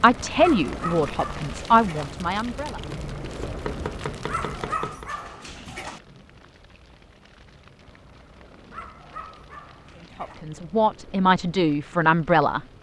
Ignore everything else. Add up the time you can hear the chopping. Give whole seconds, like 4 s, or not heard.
2 s.